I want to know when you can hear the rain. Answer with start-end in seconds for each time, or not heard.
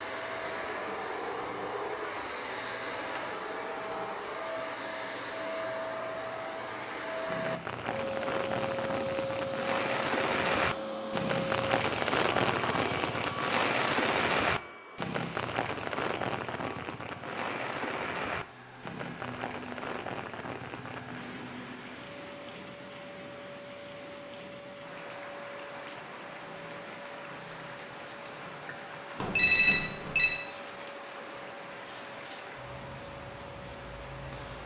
7.2-34.6.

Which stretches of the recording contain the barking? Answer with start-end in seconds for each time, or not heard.
not heard.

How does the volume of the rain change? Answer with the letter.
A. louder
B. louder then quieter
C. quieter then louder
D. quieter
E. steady
D.